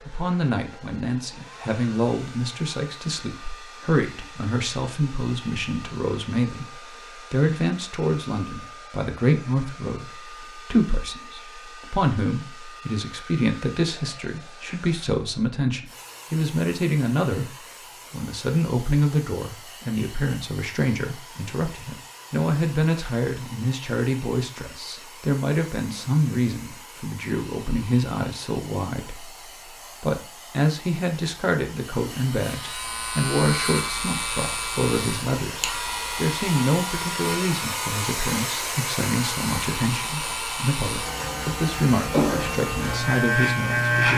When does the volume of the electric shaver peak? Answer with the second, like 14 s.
44 s.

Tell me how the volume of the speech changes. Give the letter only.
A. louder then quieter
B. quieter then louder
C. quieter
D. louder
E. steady
E.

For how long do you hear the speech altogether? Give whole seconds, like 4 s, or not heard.
44 s.